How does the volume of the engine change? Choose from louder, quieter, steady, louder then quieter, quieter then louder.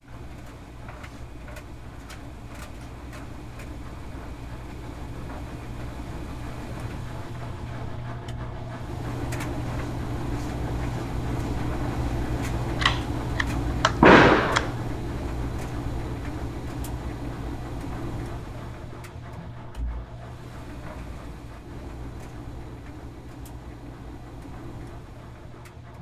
louder then quieter.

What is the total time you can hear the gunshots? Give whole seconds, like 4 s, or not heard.
2 s.